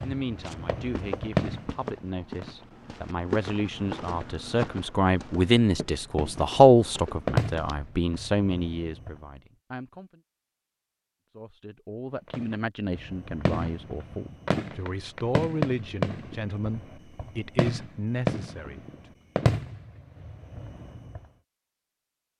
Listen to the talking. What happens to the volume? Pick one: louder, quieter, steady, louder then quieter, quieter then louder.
louder then quieter.